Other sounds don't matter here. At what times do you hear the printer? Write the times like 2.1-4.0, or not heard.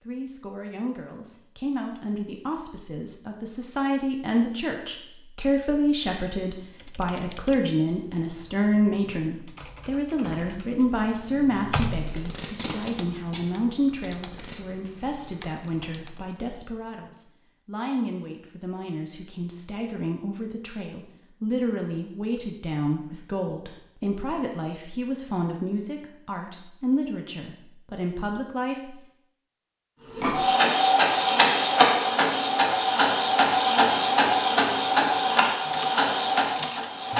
30.1-37.1.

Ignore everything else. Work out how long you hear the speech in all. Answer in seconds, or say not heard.
29 s.